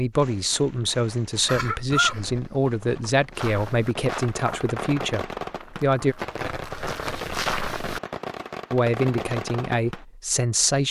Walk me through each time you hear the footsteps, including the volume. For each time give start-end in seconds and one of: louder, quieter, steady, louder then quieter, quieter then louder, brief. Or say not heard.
3.4-8.0 quieter then louder.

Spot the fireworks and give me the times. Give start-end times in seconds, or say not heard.
0.1-10.1.